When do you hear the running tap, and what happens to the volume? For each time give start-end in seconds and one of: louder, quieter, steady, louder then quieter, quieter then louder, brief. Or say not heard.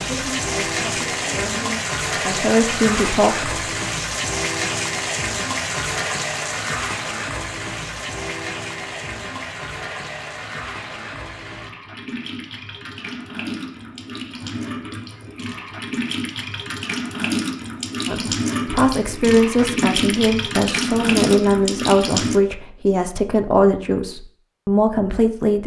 0.0-22.4 quieter then louder.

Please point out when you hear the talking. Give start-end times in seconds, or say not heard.
0.0-3.6, 18.1-25.6.